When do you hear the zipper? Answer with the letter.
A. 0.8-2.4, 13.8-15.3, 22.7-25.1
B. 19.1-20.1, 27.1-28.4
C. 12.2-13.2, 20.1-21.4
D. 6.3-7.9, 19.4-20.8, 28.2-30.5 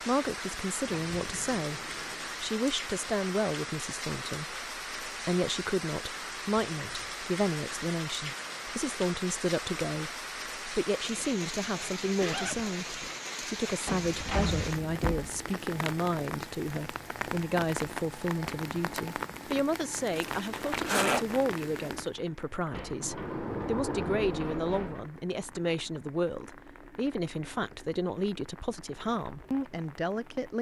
C.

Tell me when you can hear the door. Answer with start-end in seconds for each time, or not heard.
0.8-2.4, 13.8-15.3, 22.7-25.1.